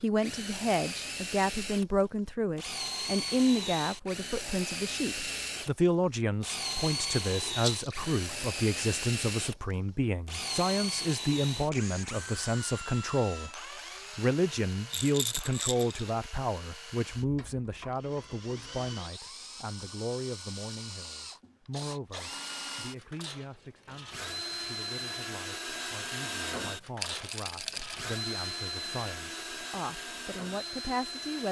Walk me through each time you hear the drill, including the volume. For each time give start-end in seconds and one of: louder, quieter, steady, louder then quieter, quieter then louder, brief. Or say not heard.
0.0-31.4 quieter then louder.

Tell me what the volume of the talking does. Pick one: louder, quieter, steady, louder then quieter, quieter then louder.
quieter.